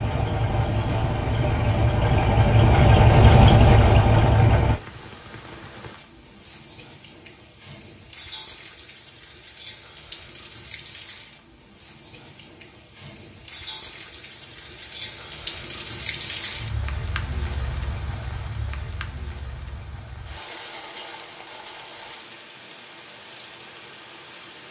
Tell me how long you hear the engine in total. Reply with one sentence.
You can hear the engine for 5 seconds altogether.